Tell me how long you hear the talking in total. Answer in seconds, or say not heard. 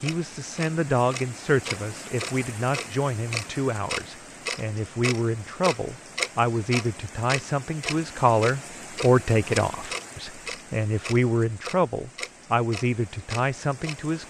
14 s.